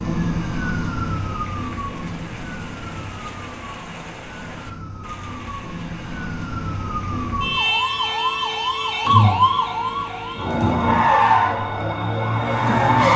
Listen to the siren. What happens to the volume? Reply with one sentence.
The volume of the siren goes down, then up.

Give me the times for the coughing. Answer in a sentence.
The coughing can't be heard in this clip.